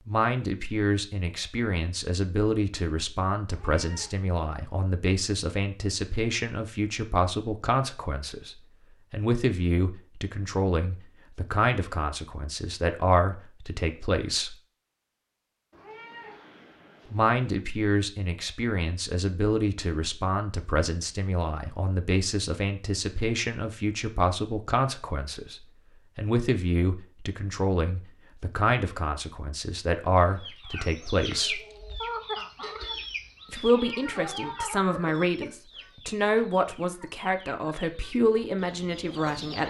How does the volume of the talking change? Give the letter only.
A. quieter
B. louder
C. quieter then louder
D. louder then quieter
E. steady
E.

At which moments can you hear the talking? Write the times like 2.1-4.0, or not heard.
0.1-14.6, 17.1-31.6, 33.5-39.6.